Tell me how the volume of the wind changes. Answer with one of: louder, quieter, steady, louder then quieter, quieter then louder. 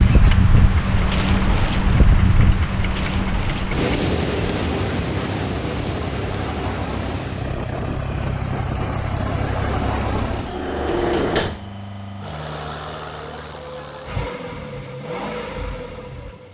quieter.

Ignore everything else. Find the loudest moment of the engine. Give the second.
11 s.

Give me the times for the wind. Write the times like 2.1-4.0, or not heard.
0.0-11.5.